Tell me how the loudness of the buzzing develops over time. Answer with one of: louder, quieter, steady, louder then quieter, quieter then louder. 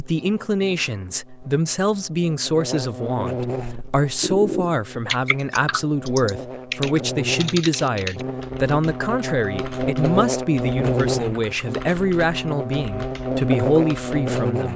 louder.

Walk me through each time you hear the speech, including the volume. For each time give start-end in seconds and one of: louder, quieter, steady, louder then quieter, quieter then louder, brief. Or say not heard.
0.0-14.7 steady.